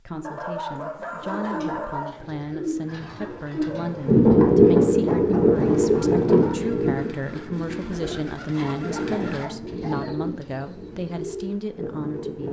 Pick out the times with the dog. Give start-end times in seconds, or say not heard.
0.2-2.2, 5.0-6.6, 8.6-10.2.